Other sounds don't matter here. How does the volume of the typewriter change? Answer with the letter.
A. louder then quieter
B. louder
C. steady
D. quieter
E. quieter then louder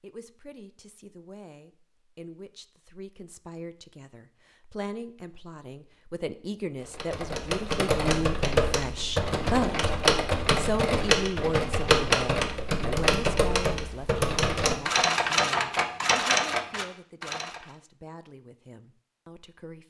C.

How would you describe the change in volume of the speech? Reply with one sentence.
The loudness of the speech goes up, then down.